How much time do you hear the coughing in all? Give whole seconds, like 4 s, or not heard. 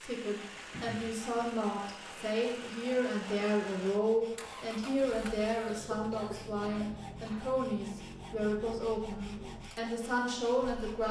2 s.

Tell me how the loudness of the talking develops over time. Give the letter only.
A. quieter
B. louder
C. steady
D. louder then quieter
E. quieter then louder
C.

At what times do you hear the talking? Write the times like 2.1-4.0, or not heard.
0.0-11.0.